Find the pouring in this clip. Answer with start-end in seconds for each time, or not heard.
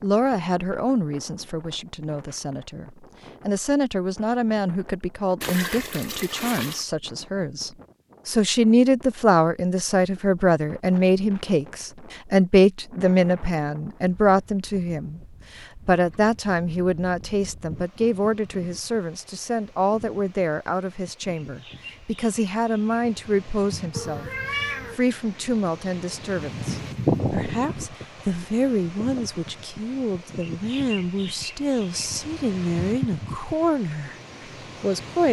5.4-6.8.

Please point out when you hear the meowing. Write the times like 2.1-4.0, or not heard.
23.9-25.0.